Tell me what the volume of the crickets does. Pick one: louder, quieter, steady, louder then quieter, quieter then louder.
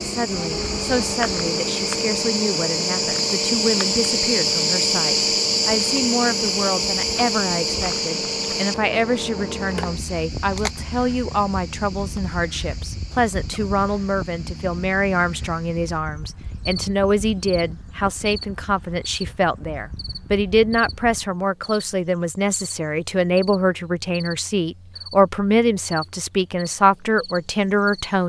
quieter.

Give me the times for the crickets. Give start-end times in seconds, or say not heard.
0.0-28.2.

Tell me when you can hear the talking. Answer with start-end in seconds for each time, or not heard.
0.0-28.2.